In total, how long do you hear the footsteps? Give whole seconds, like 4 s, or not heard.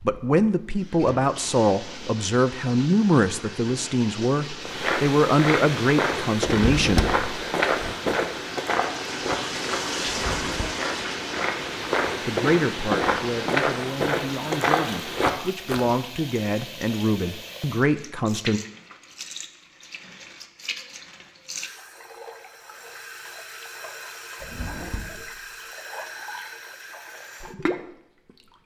11 s.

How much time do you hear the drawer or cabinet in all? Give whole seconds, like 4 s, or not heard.
3 s.